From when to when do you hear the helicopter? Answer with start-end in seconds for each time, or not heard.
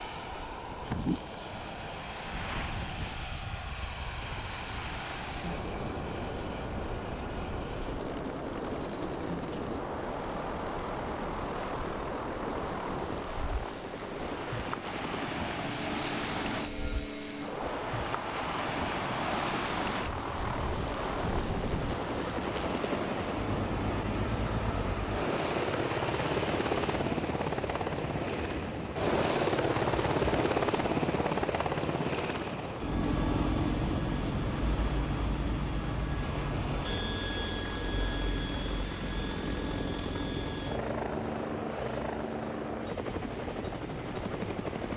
0.0-44.9.